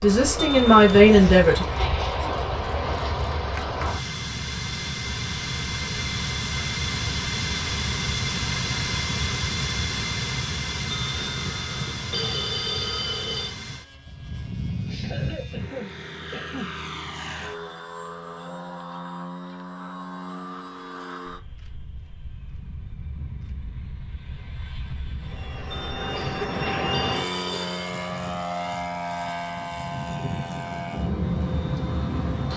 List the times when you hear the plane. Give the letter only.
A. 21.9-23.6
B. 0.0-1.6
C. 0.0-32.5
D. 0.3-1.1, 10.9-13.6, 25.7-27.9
C.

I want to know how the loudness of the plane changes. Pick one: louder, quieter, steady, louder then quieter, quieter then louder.
quieter then louder.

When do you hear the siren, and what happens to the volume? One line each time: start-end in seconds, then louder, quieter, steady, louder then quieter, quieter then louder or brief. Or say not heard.
not heard.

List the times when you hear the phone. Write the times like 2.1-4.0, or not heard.
0.3-1.1, 10.9-13.6, 25.7-27.9.